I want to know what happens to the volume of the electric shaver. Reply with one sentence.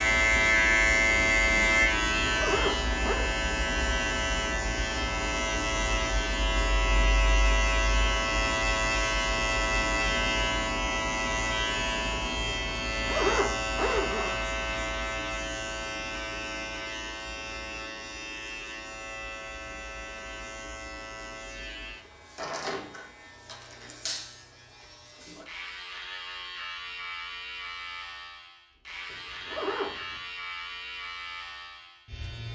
The volume of the electric shaver goes down.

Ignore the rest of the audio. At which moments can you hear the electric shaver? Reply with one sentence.
You can hear the electric shaver from 0.0 to 32.4 s.